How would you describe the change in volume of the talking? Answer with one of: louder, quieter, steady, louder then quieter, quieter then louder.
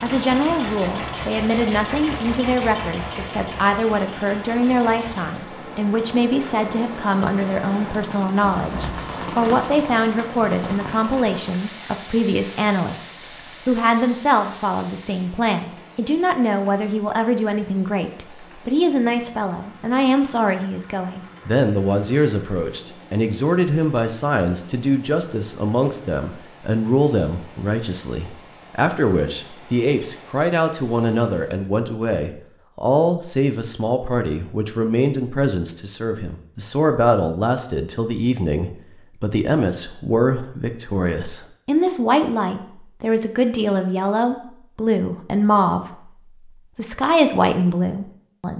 steady.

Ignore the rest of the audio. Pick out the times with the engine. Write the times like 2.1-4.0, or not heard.
0.0-5.5.